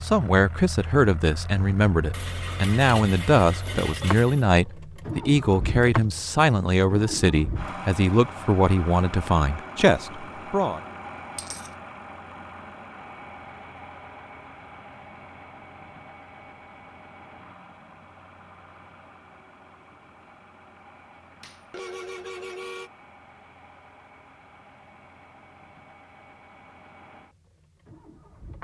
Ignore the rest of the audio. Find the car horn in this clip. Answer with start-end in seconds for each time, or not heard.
21.7-22.9.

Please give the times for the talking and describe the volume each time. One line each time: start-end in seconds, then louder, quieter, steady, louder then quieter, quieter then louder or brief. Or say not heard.
0.0-10.8 steady.